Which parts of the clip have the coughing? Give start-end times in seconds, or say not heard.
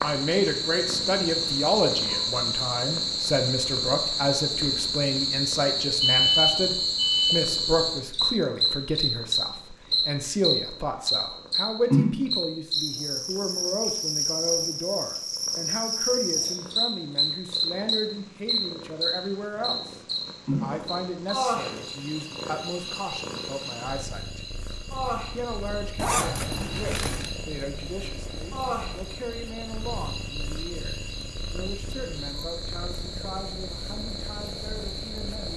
not heard.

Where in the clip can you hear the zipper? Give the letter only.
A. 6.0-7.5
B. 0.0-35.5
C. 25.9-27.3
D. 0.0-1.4
C.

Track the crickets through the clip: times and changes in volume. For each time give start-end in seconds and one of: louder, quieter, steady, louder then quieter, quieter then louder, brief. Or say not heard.
0.0-35.5 quieter.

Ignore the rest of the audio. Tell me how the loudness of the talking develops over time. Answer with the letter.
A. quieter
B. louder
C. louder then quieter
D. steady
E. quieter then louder
A.